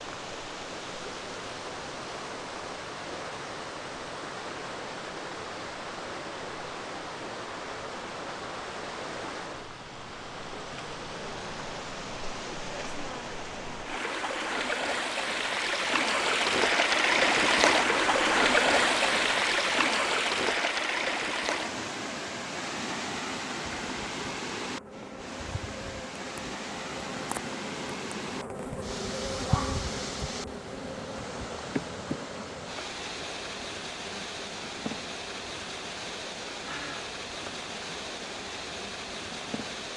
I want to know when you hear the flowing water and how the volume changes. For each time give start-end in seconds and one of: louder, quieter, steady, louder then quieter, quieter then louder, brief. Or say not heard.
0.0-39.9 louder then quieter.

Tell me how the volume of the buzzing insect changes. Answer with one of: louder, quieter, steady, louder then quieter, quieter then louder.
louder then quieter.